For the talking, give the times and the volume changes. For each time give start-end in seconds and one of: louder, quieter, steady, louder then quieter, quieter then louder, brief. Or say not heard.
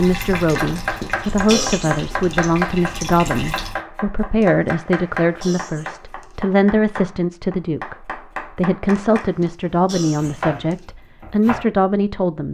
0.0-12.4 steady.